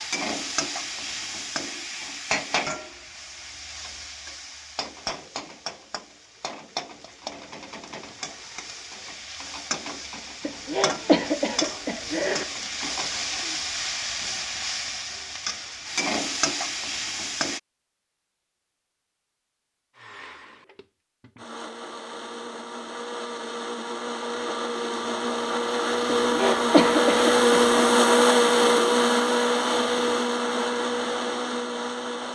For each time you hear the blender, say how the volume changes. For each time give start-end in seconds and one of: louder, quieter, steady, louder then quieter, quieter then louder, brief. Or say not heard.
19.9-32.2 louder then quieter.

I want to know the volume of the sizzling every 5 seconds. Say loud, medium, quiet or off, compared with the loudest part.
loud, medium, loud, loud, off, off, off.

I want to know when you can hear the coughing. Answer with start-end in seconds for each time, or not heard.
10.4-12.4, 26.1-27.8.